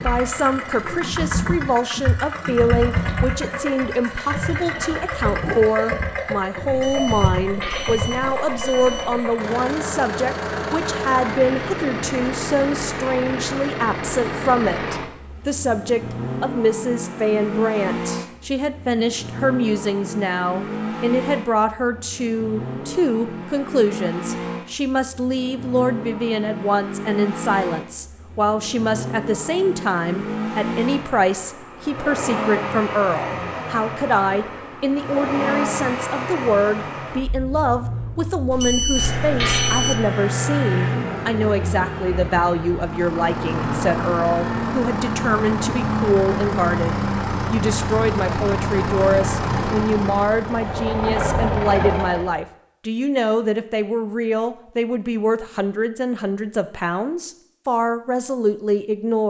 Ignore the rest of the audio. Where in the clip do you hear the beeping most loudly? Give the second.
40 s.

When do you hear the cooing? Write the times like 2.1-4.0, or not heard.
not heard.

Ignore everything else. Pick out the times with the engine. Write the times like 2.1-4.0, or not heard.
0.0-52.4.